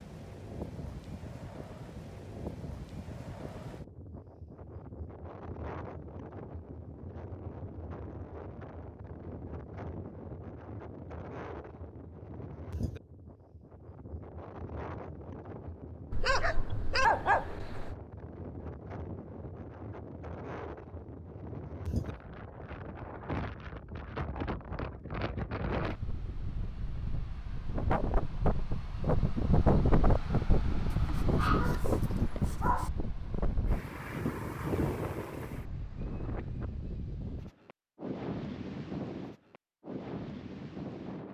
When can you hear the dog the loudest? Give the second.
17 s.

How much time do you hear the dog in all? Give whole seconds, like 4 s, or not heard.
4 s.